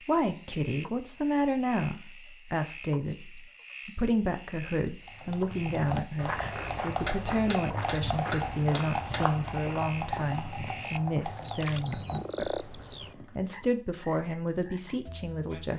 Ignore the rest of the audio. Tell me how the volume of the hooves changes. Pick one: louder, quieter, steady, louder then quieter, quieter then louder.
quieter.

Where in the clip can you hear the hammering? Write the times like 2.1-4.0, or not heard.
7.0-9.2.